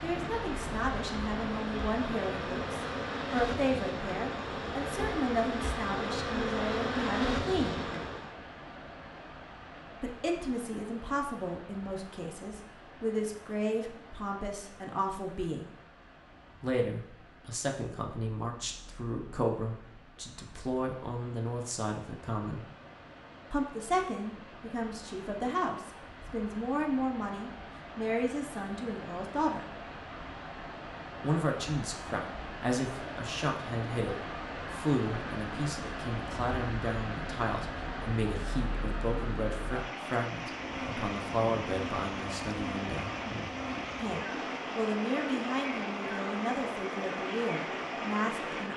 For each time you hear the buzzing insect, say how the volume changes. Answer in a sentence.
You can hear the buzzing insect from 0.0 to 8.3 s, getting louder; and from 40.5 to 48.7 s, at a steady volume.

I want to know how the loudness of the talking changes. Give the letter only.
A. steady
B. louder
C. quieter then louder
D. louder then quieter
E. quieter
A.